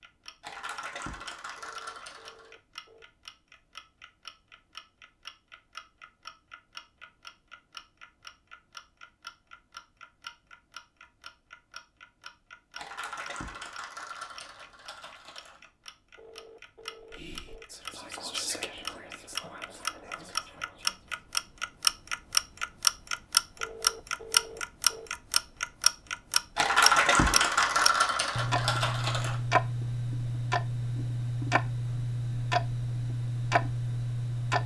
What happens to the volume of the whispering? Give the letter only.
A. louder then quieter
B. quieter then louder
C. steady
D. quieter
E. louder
A.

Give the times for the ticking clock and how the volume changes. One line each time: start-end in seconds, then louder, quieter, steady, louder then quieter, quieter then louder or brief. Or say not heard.
0.0-34.6 louder then quieter.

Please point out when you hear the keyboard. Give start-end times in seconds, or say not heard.
0.4-2.5, 12.8-15.7, 26.6-29.4.